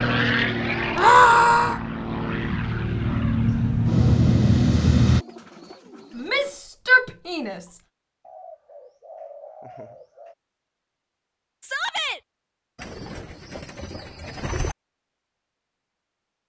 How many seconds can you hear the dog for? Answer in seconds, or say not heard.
not heard.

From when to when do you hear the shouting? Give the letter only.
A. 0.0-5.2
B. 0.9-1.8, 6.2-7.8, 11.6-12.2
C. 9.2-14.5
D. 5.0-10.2
B.